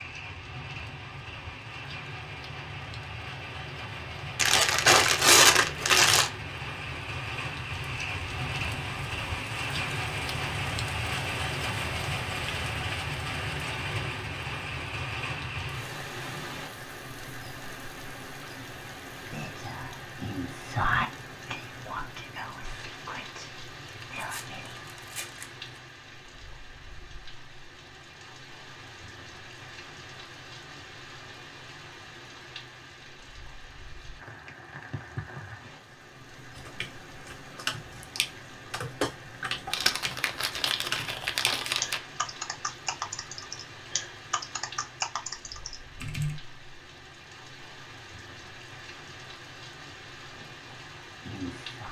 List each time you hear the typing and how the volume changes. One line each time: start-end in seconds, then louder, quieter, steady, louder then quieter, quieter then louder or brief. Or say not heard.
36.5-46.4 steady.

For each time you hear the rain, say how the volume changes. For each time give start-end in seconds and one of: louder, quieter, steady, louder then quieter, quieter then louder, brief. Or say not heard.
0.0-51.8 quieter.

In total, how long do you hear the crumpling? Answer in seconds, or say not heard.
6 s.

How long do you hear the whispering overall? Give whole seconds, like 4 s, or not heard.
7 s.